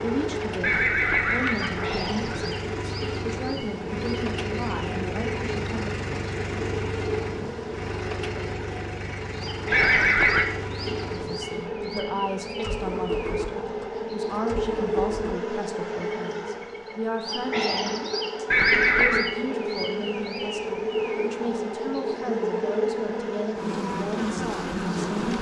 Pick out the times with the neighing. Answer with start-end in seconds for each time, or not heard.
0.6-2.5, 9.7-10.4, 18.5-19.3.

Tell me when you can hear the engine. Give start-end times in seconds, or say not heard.
0.0-15.3.